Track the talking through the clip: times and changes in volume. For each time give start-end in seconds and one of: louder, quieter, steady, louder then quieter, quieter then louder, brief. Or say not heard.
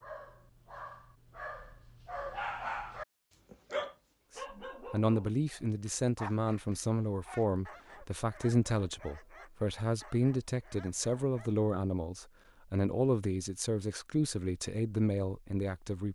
4.3-16.1 steady.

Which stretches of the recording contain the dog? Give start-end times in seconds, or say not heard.
0.0-11.5.